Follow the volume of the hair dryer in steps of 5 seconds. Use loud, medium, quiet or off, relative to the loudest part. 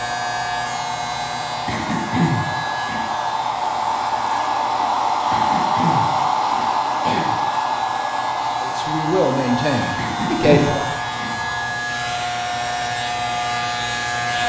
loud, loud, medium.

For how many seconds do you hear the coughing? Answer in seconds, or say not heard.
5 s.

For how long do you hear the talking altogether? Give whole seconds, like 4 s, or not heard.
2 s.